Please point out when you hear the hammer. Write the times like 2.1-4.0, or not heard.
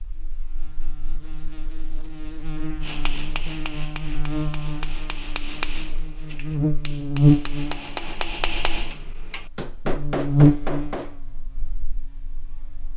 2.8-11.2.